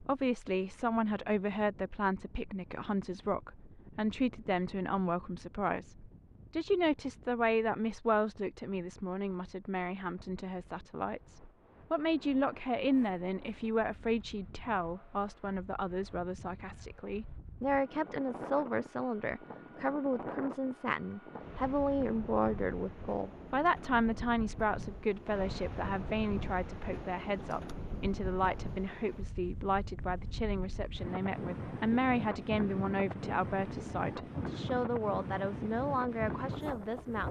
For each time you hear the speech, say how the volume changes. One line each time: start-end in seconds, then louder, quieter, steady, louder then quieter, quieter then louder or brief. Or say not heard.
0.0-37.2 steady.